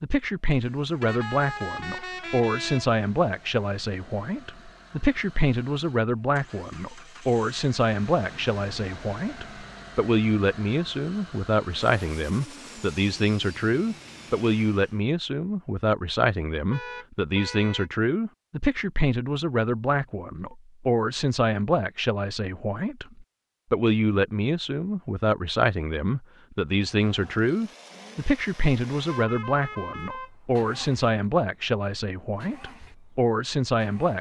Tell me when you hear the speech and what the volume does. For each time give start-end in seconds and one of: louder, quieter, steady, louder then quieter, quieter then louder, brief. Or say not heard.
0.0-34.1 steady.